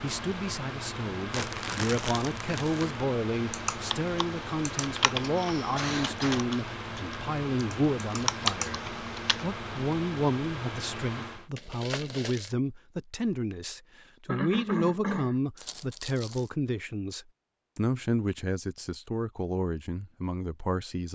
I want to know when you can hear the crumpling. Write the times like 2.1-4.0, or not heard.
1.3-3.0, 11.6-12.5, 15.6-16.5.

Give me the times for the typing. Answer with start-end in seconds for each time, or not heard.
3.5-9.4.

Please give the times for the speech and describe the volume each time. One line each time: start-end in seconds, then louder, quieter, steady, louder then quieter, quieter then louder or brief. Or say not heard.
0.0-21.1 steady.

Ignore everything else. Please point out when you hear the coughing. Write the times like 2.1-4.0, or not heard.
5.8-6.5, 14.2-15.3.